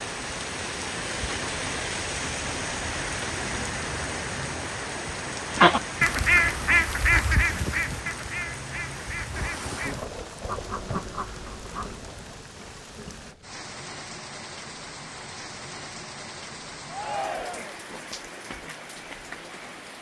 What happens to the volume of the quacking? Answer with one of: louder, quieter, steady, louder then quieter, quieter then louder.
quieter.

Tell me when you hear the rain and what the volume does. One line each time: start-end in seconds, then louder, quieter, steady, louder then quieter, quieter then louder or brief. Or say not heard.
0.0-19.9 quieter.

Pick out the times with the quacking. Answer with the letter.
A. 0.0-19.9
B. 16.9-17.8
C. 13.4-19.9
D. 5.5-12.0
D.